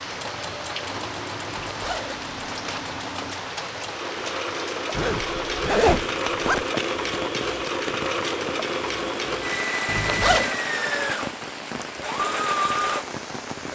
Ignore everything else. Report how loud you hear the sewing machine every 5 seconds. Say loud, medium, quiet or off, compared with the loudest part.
medium, loud, loud.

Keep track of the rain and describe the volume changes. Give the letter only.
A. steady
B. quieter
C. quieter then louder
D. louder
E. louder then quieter
A.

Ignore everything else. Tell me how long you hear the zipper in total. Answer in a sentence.
You can hear the zipper for 4 seconds altogether.